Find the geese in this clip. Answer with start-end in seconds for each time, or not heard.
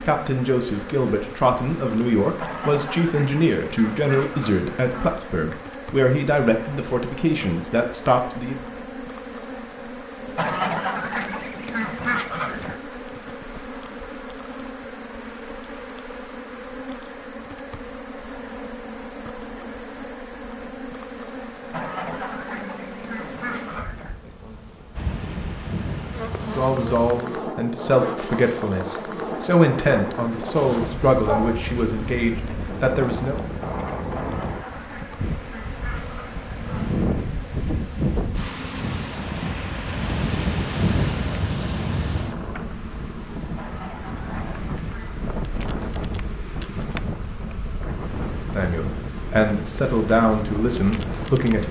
2.4-5.2, 10.3-12.8, 21.7-24.1, 34.1-37.0, 43.5-45.2.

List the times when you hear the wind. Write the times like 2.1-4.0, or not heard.
24.9-51.6.